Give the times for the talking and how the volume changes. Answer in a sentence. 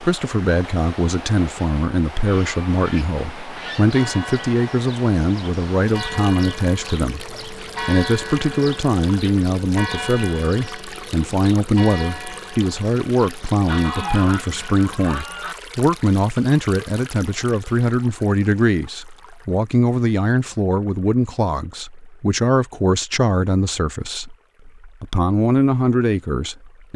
The talking can be heard from 0.0 to 26.9 s, at a steady volume.